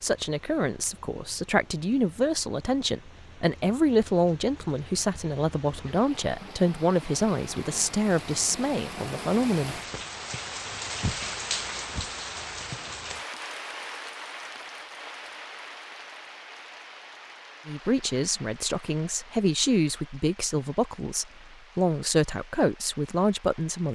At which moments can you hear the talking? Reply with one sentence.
The talking can be heard from 0.0 to 9.8 s and from 17.6 to 23.8 s.